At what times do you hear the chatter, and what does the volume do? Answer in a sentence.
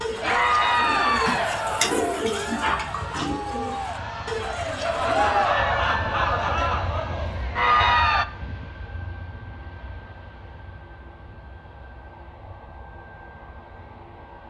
You can hear the chatter from 0.1 to 8.2 s, getting quieter then louder.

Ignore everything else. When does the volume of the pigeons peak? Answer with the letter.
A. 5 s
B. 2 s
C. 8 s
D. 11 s
B.